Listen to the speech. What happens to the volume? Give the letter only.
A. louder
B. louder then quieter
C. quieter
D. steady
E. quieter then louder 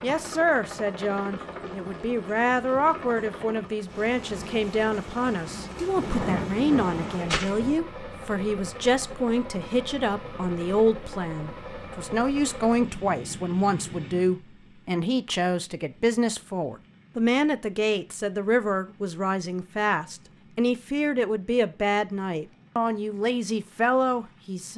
D.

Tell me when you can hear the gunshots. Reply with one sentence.
You can hear the gunshots from 6.0 to 7.8 s.